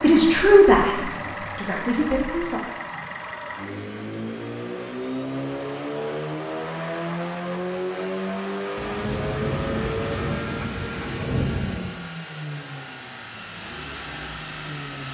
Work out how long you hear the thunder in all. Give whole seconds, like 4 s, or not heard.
3 s.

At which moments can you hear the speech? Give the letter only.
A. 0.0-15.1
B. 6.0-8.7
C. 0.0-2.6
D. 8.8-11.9
C.